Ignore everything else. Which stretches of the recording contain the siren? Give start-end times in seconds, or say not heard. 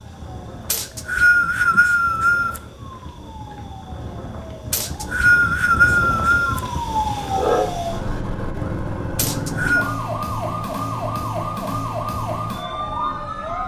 0.0-13.6.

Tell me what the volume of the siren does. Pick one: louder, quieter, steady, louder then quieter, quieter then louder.
louder.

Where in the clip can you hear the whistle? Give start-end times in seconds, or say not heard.
0.7-2.6, 4.7-6.6, 9.2-9.9.